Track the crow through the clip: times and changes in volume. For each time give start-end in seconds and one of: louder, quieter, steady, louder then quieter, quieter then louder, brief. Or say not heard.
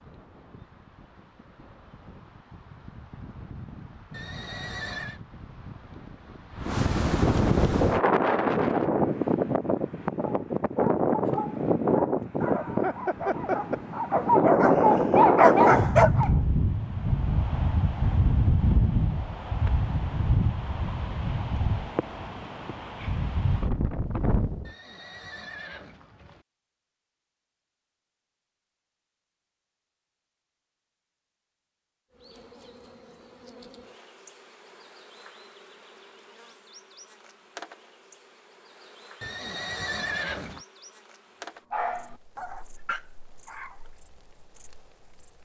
not heard.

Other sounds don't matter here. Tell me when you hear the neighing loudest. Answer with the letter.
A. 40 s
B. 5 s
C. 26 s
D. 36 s
A.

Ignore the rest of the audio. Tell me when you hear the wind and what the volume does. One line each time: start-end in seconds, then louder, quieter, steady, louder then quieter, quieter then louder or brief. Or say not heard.
0.0-24.7 louder then quieter.